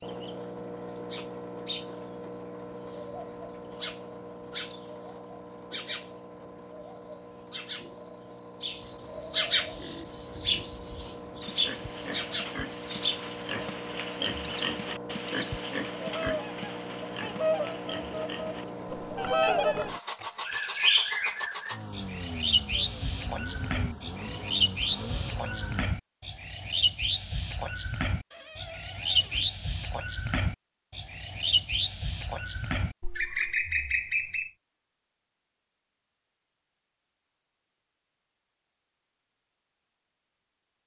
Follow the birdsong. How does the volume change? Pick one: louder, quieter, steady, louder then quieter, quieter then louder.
louder.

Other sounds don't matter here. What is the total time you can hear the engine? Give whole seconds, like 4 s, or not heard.
26 s.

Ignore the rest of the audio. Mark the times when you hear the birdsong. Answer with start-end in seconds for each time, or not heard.
0.0-34.5.